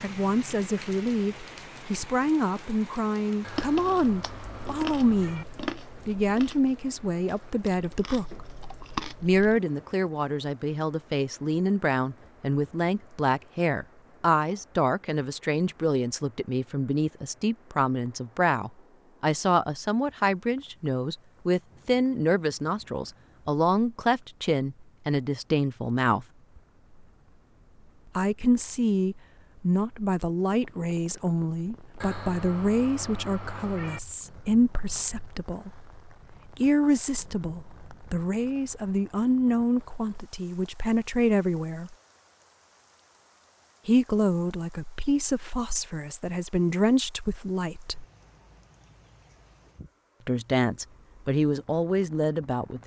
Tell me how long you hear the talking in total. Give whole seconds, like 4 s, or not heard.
46 s.